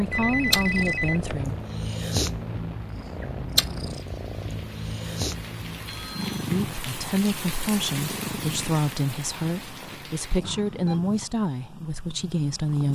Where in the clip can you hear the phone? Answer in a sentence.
The phone can be heard from 0.1 to 1.4 s, from 5.8 to 6.5 s and from 9.7 to 11.0 s.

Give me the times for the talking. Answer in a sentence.
The talking can be heard from 0.0 to 1.6 s and from 6.5 to 12.8 s.